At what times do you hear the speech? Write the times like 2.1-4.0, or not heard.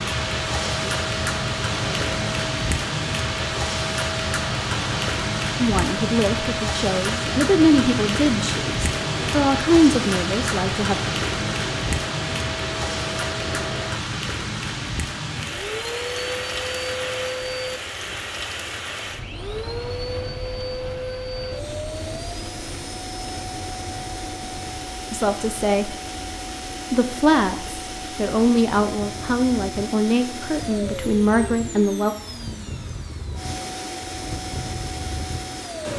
5.5-11.0, 25.1-25.9, 26.9-32.1.